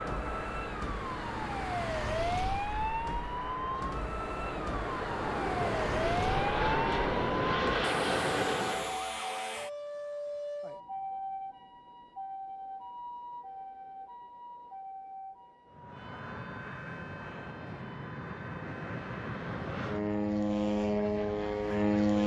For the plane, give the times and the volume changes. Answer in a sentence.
You can hear the plane from 0.0 to 9.0 s, getting louder; and from 15.7 to 22.2 s, getting louder.